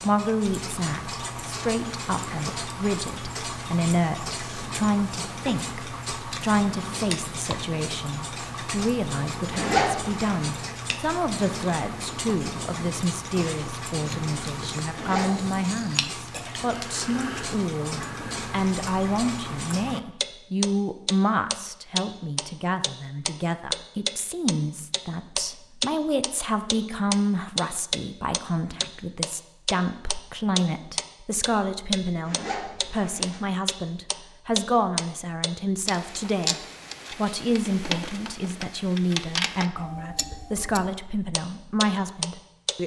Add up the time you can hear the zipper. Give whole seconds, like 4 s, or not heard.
3 s.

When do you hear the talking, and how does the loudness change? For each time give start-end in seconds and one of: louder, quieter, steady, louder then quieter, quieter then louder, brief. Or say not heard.
0.0-42.8 steady.